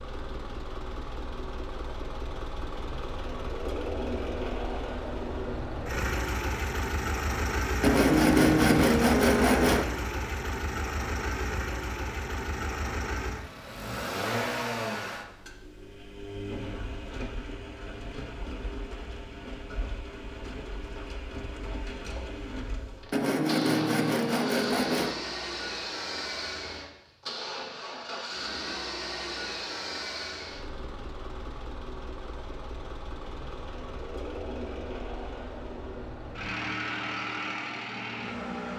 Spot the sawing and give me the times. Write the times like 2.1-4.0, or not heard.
7.8-9.8, 23.1-25.1.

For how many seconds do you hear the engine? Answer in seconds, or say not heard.
39 s.